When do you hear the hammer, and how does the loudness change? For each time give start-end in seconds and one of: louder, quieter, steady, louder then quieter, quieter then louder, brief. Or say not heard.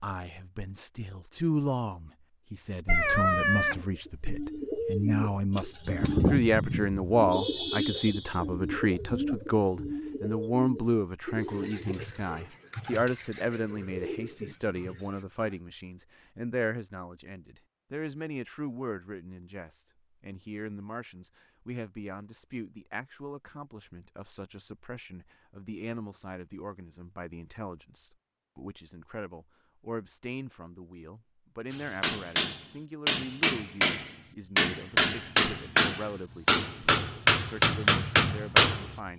31.7-38.9 louder.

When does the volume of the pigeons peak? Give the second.
6 s.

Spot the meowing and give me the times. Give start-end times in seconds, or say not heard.
2.9-3.8.